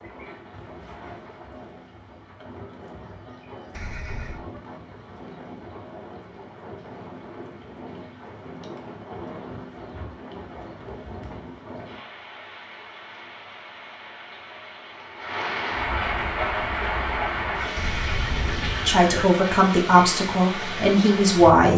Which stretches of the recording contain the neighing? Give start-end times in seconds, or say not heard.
3.7-4.5, 17.8-19.3.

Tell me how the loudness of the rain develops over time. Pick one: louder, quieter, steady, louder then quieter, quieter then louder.
louder.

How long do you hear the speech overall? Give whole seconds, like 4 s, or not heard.
3 s.